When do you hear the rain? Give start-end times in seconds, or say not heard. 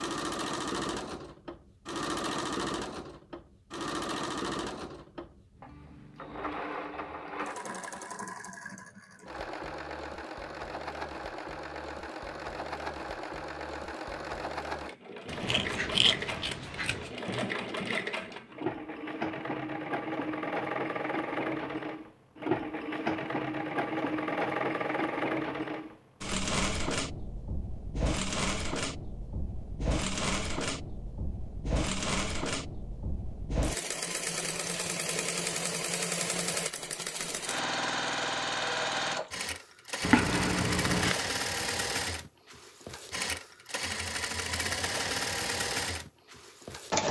not heard.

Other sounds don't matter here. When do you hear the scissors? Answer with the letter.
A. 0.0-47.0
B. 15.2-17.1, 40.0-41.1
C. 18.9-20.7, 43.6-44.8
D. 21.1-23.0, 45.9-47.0
B.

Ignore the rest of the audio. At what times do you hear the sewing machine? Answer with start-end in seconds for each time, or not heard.
0.0-47.0.